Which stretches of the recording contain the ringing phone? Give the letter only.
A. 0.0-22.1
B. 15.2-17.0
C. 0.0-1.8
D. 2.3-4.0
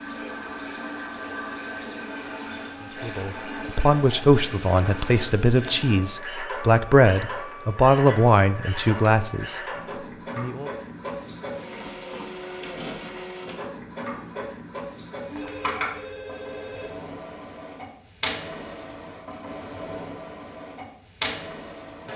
B.